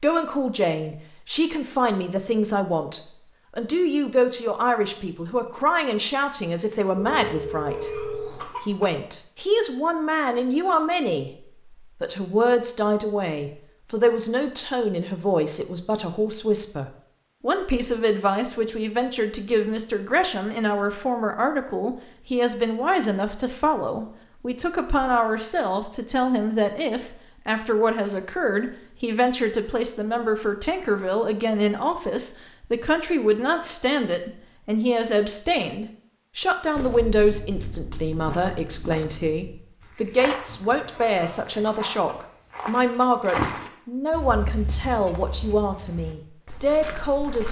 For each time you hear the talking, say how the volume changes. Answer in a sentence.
You can hear the talking from 0.0 to 47.4 s, at a steady volume.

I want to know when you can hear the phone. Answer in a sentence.
The phone can be heard from 7.0 to 8.3 s.